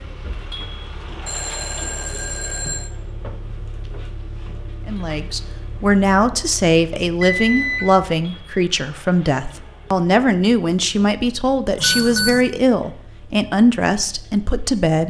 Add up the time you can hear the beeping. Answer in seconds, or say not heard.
3 s.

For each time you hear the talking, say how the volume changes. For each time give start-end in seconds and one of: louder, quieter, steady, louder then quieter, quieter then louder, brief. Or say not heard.
4.8-15.0 steady.